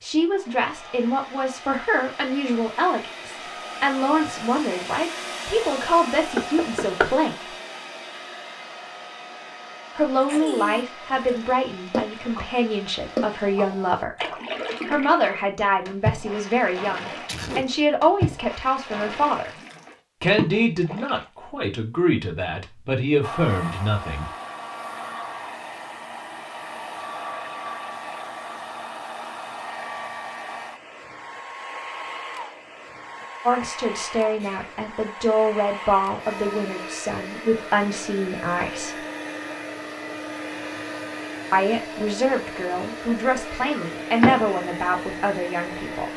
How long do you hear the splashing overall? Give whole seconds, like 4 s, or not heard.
10 s.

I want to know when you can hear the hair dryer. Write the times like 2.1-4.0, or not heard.
0.1-14.1, 23.2-46.1.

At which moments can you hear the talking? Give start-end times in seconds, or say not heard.
0.0-7.5, 9.9-14.2, 14.8-19.5, 20.2-24.3, 33.5-39.0, 41.5-46.1.